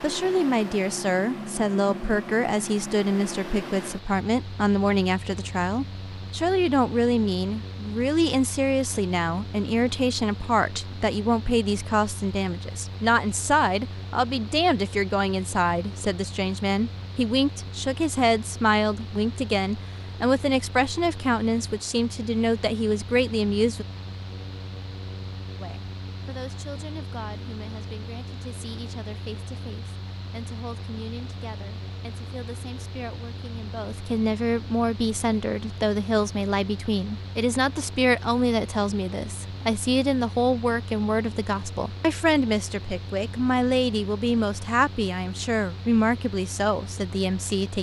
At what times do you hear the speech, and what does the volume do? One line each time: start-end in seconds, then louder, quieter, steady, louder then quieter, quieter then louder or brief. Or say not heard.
0.0-23.9 steady
25.6-47.7 louder.